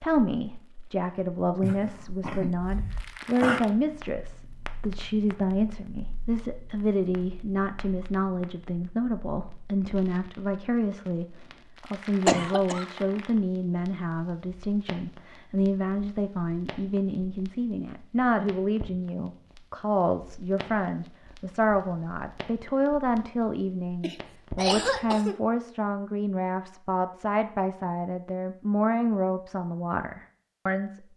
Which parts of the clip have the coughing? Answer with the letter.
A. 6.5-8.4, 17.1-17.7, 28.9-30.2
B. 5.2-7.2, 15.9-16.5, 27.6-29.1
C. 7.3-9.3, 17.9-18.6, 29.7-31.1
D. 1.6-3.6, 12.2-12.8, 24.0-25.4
D.